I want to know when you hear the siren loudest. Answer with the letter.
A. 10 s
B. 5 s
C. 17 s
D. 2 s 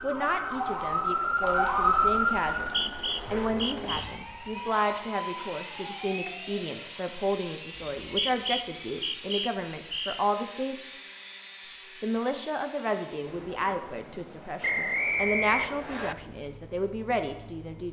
D.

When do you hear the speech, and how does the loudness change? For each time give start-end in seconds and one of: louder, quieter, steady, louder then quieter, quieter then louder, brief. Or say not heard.
0.0-10.9 steady
12.0-17.8 steady.